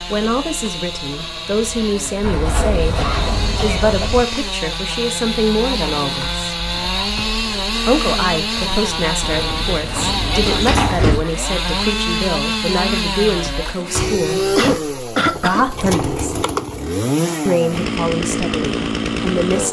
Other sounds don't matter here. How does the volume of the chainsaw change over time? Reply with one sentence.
The volume of the chainsaw goes up.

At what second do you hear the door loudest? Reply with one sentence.
The volume of the door peaks at 11 seconds.